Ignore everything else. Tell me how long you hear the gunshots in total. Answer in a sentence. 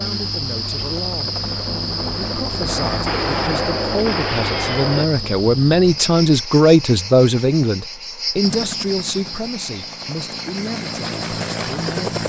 You can hear the gunshots for 2 seconds altogether.